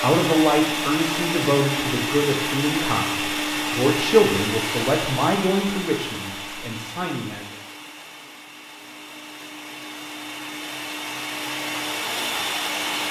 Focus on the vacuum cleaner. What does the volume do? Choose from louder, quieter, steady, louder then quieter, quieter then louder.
quieter then louder.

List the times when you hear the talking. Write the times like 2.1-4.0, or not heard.
0.0-7.5.